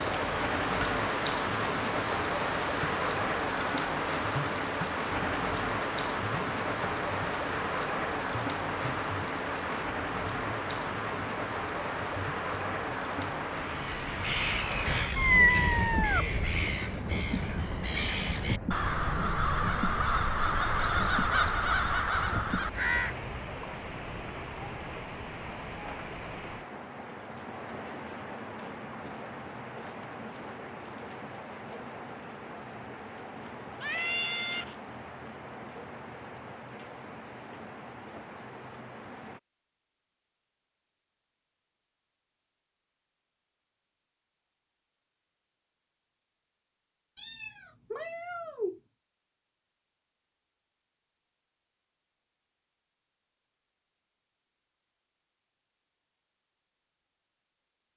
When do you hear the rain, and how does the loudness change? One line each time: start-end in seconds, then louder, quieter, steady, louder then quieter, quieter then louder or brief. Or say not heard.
0.0-39.4 quieter.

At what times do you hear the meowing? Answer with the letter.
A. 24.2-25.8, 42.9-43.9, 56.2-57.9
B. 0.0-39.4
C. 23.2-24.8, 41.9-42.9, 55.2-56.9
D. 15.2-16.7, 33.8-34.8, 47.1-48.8
D.